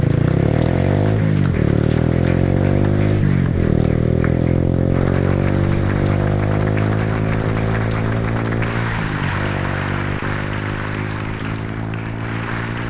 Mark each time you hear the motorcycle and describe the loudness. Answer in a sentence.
The motorcycle can be heard from 0.0 to 12.8 s, getting quieter.